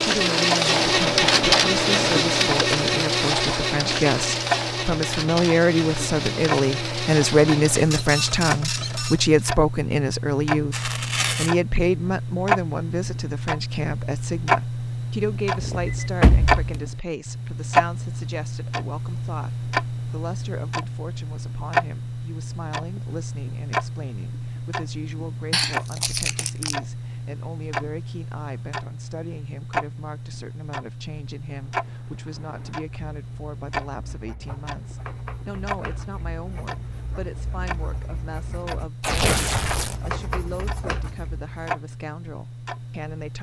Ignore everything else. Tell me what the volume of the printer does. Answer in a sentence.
The loudness of the printer goes down.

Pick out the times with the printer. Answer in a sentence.
The printer can be heard from 0.0 to 9.4 s.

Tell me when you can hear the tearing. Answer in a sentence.
The tearing can be heard from 10.7 to 11.5 s, from 25.5 to 26.8 s and from 39.0 to 40.0 s.